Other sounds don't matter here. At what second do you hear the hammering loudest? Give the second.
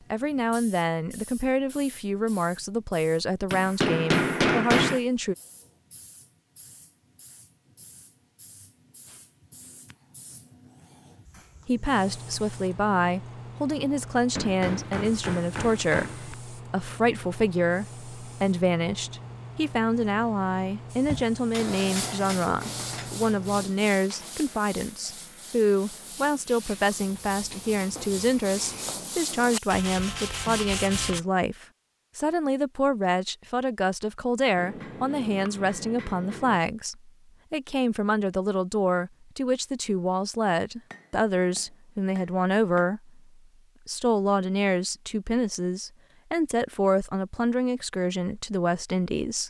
5 s.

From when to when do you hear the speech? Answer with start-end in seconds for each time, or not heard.
0.1-5.3, 11.7-43.2, 43.9-49.4.